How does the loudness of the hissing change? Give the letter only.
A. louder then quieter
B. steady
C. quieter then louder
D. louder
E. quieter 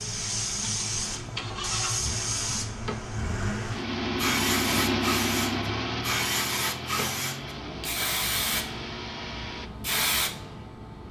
B.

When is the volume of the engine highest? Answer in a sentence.
The volume of the engine peaks at 5 seconds.